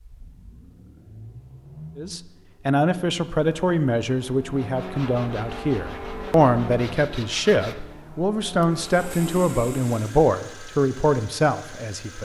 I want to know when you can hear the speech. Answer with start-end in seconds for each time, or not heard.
1.9-12.1.